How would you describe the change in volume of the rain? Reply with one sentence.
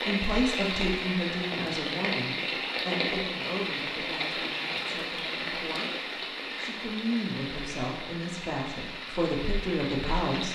The loudness of the rain goes down.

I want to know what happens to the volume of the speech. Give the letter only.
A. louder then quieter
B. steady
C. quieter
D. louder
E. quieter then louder
E.